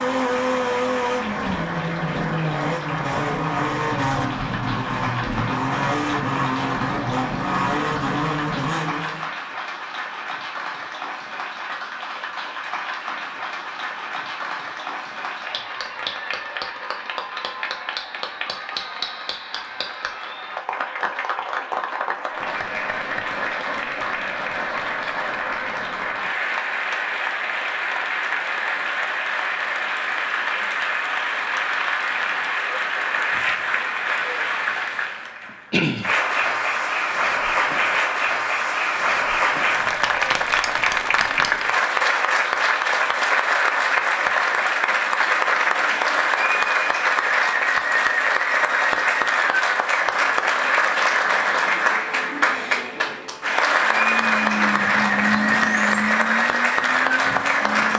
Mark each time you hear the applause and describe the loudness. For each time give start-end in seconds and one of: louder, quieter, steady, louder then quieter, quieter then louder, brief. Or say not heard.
0.0-57.9 louder.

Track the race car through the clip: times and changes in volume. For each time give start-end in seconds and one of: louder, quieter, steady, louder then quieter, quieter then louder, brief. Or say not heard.
0.0-9.3 steady
53.8-57.9 quieter.